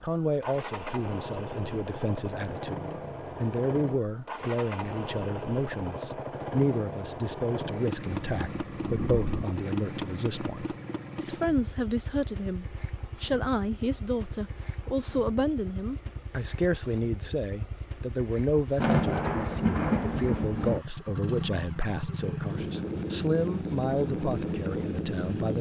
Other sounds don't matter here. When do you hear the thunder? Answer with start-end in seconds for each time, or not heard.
8.3-9.4, 18.8-20.8.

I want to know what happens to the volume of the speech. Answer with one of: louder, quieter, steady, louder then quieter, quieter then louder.
steady.